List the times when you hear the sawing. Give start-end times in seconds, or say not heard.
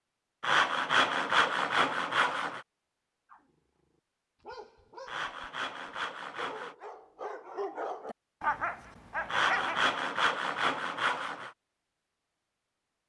0.4-2.6, 5.0-6.8, 9.2-11.5.